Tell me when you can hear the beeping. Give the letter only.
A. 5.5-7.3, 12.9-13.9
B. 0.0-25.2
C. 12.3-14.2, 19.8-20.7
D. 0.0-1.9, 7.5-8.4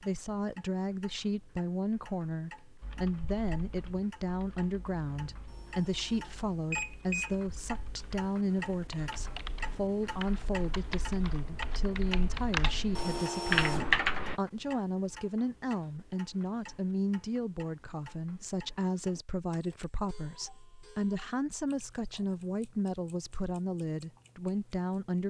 A.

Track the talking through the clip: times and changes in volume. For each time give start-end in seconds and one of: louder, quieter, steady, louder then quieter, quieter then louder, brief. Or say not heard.
0.0-25.2 steady.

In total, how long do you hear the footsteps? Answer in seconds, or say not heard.
not heard.